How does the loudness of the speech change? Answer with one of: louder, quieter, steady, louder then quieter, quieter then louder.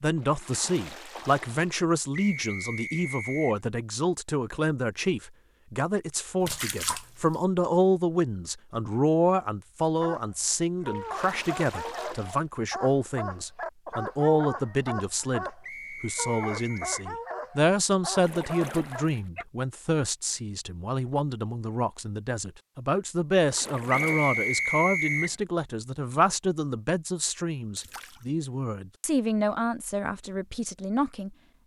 steady.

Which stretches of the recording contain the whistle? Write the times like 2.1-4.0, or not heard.
2.1-3.6, 15.6-17.1, 23.9-25.4.